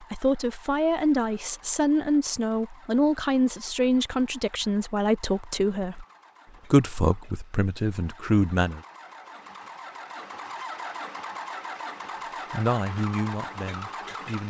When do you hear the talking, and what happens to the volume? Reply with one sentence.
You can hear the talking from 0.0 to 6.0 s, at a steady volume; briefly from 6.7 to 8.8 s; and briefly from 12.5 to 14.4 s.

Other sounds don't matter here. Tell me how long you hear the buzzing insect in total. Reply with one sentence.
You can't hear the buzzing insect here.